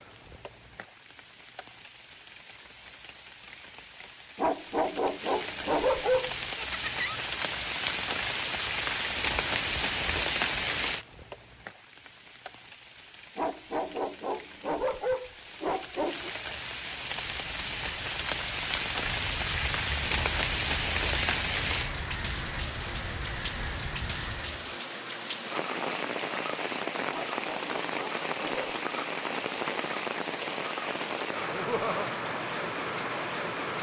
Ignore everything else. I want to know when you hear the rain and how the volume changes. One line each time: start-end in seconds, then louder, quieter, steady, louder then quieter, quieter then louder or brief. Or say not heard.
0.0-33.7 louder.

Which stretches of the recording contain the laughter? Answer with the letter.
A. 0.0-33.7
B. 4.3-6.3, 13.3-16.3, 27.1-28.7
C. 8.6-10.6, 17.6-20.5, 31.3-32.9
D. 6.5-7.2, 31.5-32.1
D.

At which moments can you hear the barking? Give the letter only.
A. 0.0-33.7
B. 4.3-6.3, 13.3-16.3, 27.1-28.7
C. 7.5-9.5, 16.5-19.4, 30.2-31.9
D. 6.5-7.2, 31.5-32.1
B.